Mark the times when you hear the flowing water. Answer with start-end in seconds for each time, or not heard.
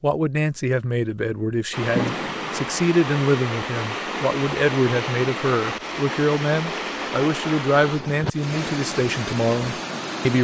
1.7-10.3.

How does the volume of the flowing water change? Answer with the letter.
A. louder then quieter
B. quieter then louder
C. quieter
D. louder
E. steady
E.